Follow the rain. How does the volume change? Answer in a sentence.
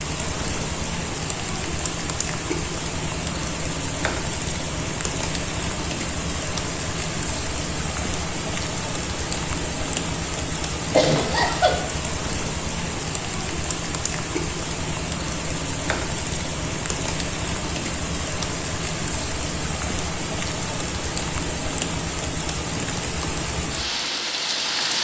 The volume of the rain stays about the same.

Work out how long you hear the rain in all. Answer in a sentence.
The rain can be heard for 25 seconds in total.